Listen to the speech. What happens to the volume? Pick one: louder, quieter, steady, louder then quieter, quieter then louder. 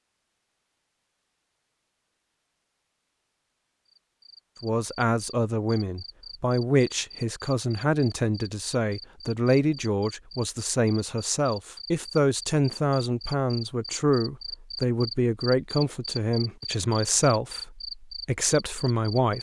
steady.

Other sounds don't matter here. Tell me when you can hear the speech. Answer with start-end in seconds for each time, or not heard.
4.6-19.3.